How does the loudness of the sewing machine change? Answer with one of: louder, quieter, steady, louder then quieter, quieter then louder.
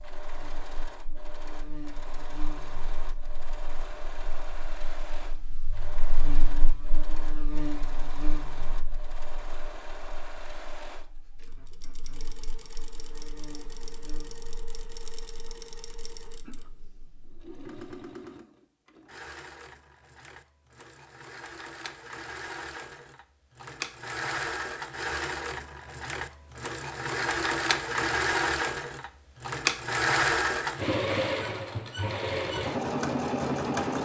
louder.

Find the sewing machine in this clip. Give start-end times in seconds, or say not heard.
0.0-34.0.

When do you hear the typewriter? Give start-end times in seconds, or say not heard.
not heard.